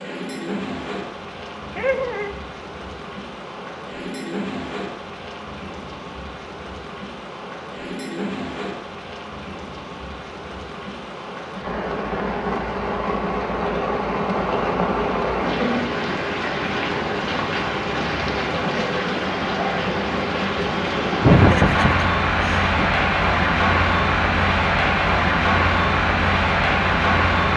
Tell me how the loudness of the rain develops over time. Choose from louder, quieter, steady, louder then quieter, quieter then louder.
louder.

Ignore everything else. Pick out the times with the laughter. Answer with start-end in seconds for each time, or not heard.
1.8-2.3, 21.2-22.9.